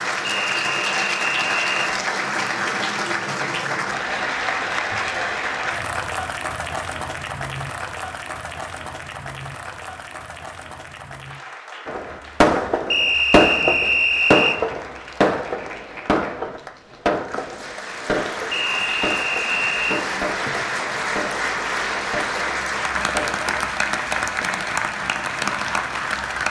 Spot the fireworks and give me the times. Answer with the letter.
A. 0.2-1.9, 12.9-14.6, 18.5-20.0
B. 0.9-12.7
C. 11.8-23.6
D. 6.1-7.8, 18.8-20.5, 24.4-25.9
C.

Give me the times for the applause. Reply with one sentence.
You can hear the applause from 0.0 to 26.4 s.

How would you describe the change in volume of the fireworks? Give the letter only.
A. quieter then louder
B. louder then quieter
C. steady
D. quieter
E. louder
D.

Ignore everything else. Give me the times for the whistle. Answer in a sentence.
The whistle can be heard from 0.2 to 1.9 s, from 12.9 to 14.6 s and from 18.5 to 20.0 s.